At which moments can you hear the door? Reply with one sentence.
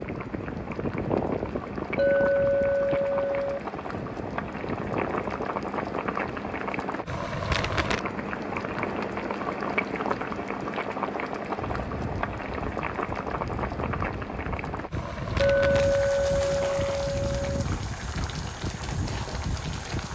You can't hear the door here.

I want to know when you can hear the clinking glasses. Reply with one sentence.
You can hear the clinking glasses from 1.9 to 3.6 s and from 15.3 to 17.6 s.